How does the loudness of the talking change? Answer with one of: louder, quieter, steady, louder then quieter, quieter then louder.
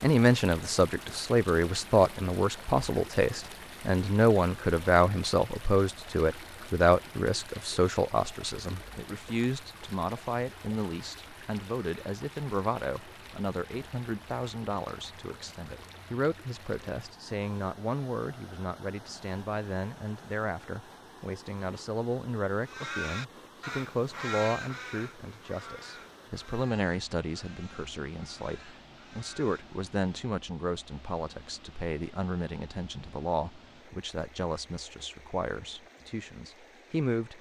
quieter.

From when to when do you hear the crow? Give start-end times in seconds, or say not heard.
22.6-29.8.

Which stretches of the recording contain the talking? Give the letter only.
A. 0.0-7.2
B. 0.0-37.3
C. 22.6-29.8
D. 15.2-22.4
B.